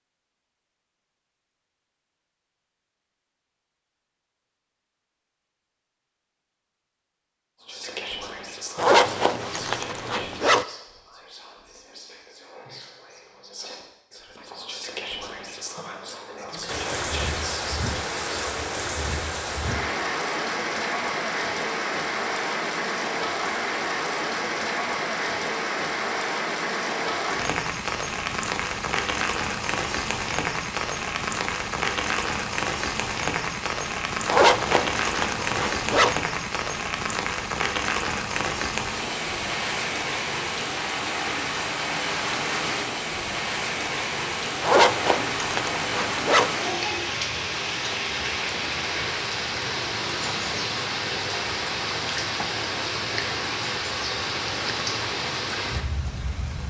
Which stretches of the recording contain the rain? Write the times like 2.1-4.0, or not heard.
16.6-56.6.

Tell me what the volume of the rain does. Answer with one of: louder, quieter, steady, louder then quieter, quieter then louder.
steady.